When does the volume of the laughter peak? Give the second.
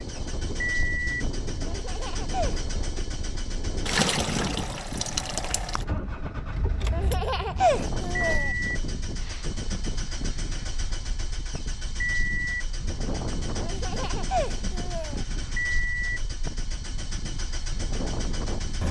8 s.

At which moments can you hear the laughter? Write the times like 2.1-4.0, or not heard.
1.6-2.6, 6.9-8.5, 13.6-15.2.